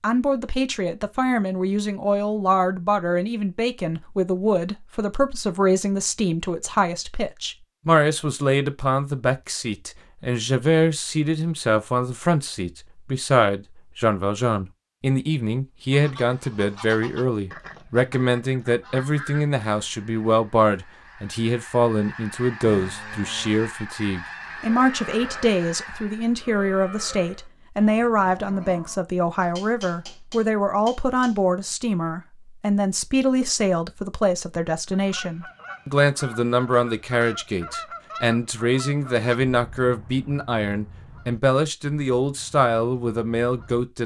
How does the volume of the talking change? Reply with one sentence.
The loudness of the talking stays about the same.